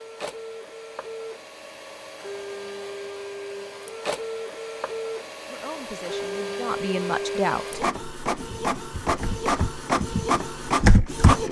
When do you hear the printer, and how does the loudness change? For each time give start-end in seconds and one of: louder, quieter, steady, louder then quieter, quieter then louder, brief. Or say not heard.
0.0-11.4 louder.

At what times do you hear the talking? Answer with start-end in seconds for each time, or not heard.
5.5-7.8.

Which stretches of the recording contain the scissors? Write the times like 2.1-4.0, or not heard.
not heard.